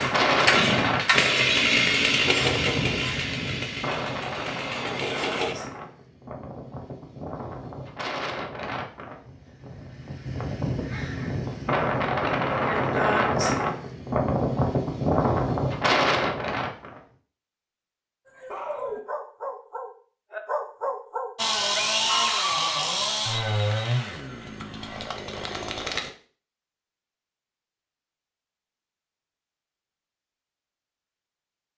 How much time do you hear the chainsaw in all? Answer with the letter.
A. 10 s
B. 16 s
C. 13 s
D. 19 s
A.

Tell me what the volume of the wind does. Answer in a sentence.
The volume of the wind goes down, then up.